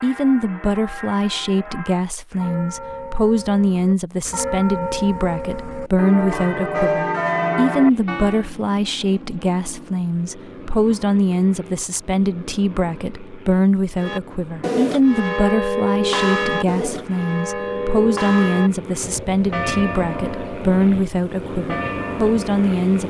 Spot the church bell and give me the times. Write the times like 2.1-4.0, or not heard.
0.0-8.4, 14.0-23.0.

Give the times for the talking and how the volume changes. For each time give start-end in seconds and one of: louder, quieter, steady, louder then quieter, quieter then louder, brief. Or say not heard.
0.0-23.0 steady.